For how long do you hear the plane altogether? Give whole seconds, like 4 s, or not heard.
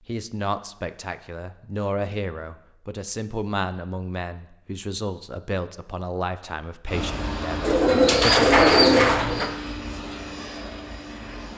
5 s.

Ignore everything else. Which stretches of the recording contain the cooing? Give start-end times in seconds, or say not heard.
7.6-9.5.